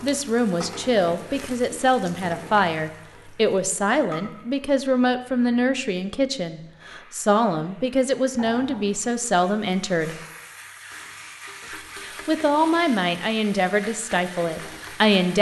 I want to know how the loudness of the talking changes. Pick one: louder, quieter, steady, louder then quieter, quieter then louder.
steady.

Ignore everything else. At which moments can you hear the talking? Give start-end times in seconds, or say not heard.
0.0-10.2, 12.0-15.3.